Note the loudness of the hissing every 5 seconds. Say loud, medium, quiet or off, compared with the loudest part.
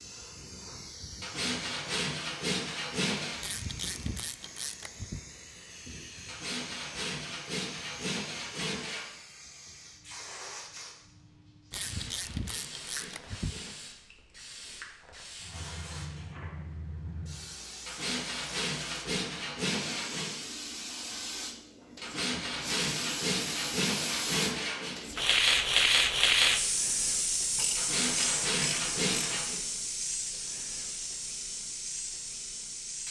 quiet, quiet, quiet, quiet, medium, loud, medium.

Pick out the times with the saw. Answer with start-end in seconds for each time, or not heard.
1.2-3.4, 6.2-9.1, 11.8-13.8, 17.9-20.4, 22.0-24.9, 27.8-29.6.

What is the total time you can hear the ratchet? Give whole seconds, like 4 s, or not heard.
6 s.